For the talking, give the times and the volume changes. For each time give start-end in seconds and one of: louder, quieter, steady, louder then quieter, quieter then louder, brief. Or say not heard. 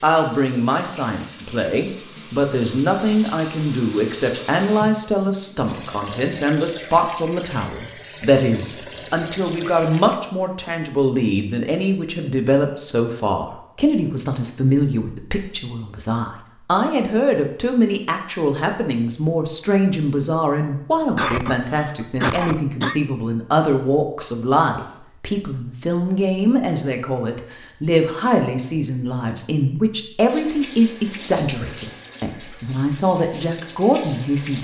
0.0-34.5 steady.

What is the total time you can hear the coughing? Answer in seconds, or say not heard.
2 s.